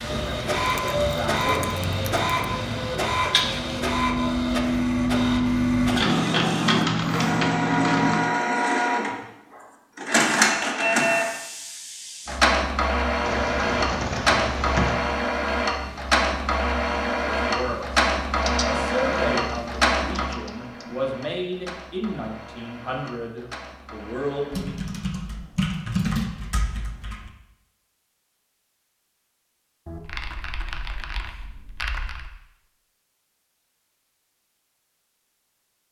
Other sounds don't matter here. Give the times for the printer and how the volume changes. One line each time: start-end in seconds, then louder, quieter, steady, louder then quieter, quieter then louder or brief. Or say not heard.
0.0-24.9 quieter.